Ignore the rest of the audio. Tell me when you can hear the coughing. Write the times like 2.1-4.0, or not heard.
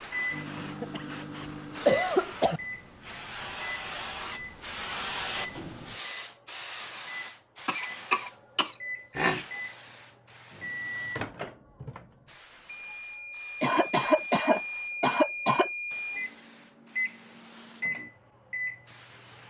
0.6-1.1, 1.9-2.6, 7.7-9.4, 13.6-15.7.